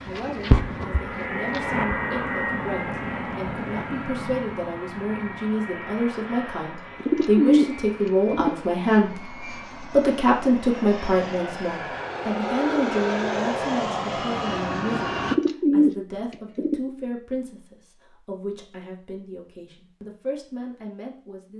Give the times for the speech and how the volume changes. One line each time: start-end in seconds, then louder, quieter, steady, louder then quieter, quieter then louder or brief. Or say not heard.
0.0-21.5 louder then quieter.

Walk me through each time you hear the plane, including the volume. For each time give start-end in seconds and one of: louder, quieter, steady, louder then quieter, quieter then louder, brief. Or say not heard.
0.0-15.3 quieter then louder.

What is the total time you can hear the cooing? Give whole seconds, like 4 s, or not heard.
3 s.